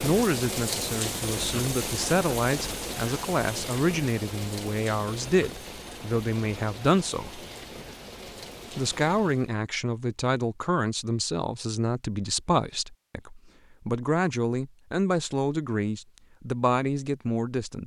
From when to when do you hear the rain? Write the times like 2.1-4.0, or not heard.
0.0-9.6.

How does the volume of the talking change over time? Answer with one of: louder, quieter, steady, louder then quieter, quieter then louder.
steady.